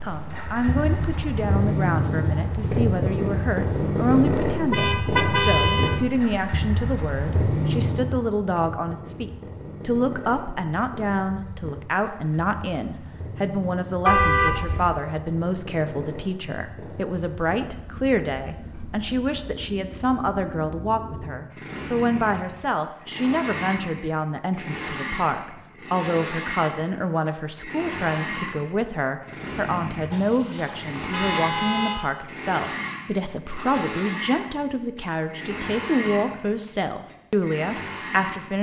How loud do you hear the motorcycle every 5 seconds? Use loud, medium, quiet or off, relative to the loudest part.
loud, loud, quiet, quiet, medium, medium, medium, medium.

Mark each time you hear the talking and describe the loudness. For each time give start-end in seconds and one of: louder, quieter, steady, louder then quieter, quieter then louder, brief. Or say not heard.
0.0-38.5 steady.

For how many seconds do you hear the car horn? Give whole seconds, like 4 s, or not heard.
4 s.